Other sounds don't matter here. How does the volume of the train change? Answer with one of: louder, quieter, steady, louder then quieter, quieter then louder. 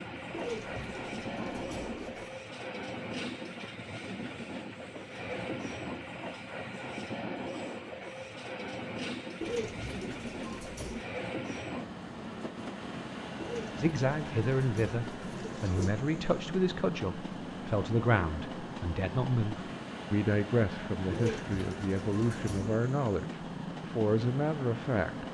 steady.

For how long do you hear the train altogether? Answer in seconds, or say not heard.
25 s.